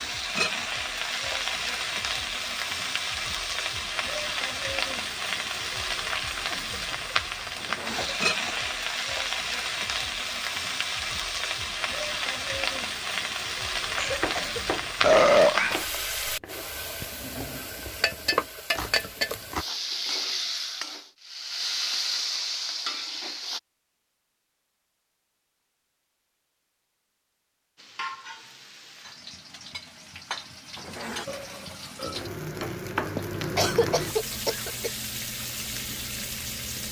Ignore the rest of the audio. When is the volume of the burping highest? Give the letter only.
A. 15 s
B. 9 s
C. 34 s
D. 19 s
A.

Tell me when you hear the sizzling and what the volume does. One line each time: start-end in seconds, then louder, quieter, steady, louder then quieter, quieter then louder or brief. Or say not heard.
0.0-23.6 steady
27.8-36.8 louder.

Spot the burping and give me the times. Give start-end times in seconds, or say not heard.
7.5-8.2, 15.0-16.4, 30.8-32.2.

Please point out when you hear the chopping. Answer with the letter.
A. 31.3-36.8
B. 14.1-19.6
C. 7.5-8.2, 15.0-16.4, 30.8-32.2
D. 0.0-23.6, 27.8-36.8
B.